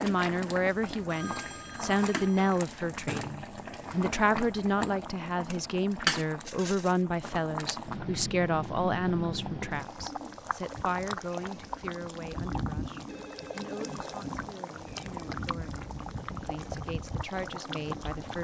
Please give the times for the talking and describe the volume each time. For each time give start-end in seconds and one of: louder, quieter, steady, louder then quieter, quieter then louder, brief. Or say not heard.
0.0-18.3 quieter.